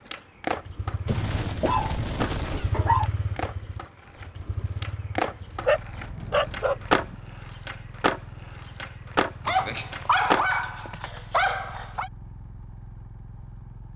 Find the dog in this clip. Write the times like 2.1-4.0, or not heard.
1.1-3.1, 5.2-7.2, 9.4-12.1.